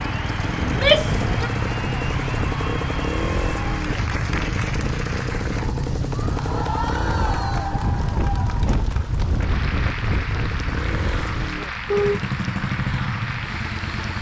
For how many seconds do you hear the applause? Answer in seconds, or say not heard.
14 s.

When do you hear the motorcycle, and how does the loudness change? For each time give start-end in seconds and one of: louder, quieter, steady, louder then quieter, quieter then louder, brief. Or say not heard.
0.0-14.1 quieter then louder.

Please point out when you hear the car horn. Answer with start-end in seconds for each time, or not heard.
11.8-12.3.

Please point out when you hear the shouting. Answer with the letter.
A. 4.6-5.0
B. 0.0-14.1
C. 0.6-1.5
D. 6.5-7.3
C.